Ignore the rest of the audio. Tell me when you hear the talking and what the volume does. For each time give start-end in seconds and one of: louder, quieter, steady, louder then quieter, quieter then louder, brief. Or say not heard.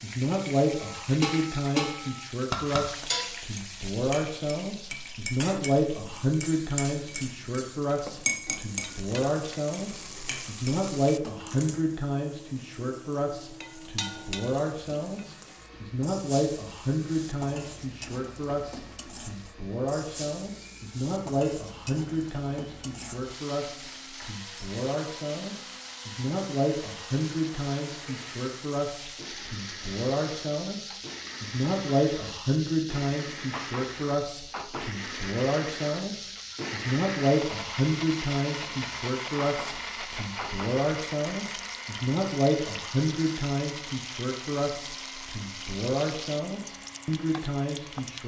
0.0-48.2 steady.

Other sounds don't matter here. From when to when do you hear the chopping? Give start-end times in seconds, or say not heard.
not heard.